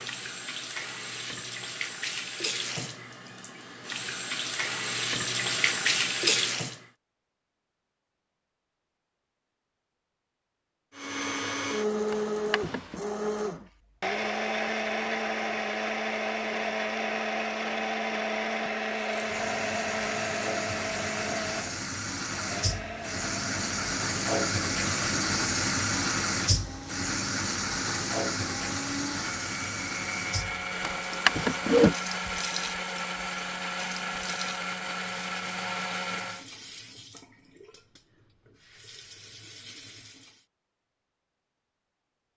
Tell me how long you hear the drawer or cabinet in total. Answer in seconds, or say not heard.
2 s.